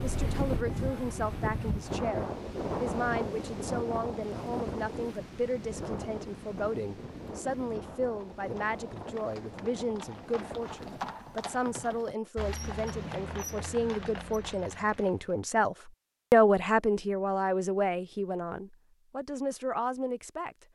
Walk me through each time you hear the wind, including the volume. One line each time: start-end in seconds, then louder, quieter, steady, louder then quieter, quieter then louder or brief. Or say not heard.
0.0-11.1 quieter.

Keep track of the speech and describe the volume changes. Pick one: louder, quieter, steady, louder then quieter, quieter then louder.
louder.